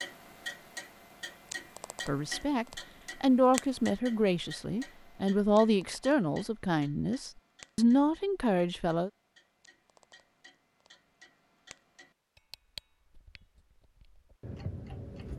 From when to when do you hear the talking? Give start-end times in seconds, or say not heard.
2.0-9.1.